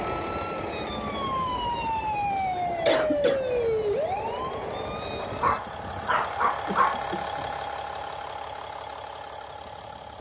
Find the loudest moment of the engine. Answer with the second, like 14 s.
7 s.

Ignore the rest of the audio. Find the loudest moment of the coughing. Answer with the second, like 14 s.
3 s.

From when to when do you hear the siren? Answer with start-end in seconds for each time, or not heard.
0.0-5.6.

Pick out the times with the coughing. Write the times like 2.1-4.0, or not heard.
2.4-3.4, 6.7-7.5.